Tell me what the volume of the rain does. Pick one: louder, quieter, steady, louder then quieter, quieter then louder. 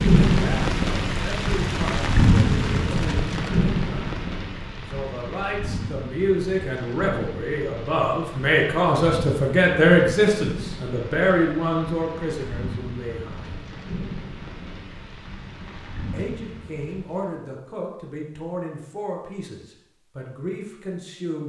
quieter.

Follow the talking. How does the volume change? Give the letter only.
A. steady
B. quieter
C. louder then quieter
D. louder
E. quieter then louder
C.